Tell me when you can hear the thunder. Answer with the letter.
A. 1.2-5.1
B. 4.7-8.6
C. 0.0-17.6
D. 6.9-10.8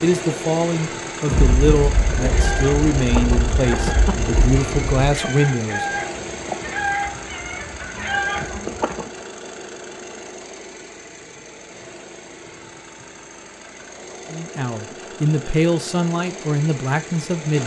A.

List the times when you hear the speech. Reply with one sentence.
The speech can be heard from 0.0 to 6.2 s and from 14.3 to 17.6 s.